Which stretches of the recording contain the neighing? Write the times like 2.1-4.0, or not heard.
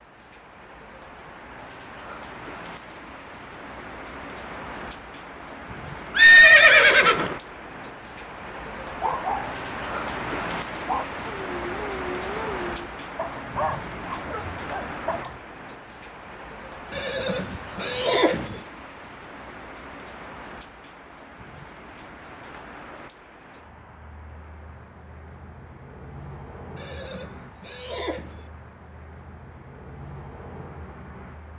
6.2-7.3, 16.9-18.6, 26.8-28.4.